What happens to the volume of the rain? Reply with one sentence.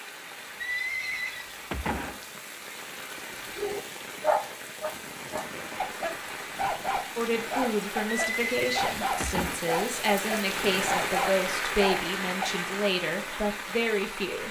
The volume of the rain goes up.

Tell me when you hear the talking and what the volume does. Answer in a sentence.
The talking can be heard from 7.2 to 14.4 s, at a steady volume.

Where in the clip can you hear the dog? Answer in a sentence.
The dog can be heard from 3.5 to 12.5 s.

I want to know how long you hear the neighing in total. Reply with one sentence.
The neighing can be heard for 3 seconds in total.